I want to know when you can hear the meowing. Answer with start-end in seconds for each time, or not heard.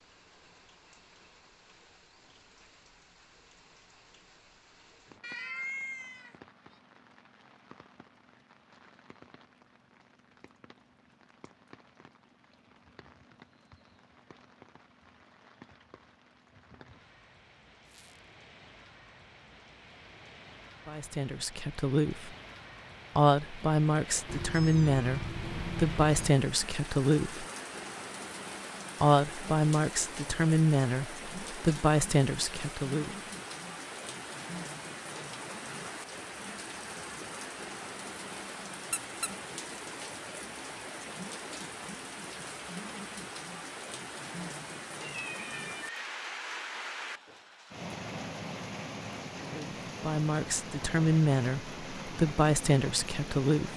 5.2-6.3, 24.2-26.3, 45.0-46.0.